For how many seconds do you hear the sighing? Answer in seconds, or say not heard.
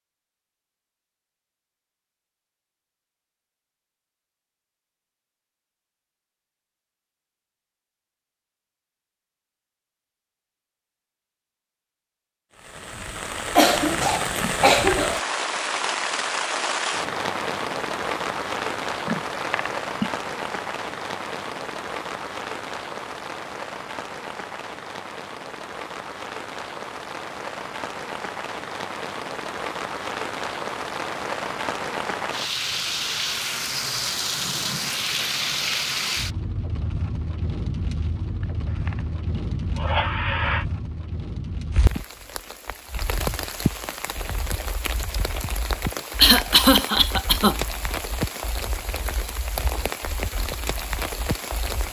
4 s.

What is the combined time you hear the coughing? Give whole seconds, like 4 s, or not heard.
3 s.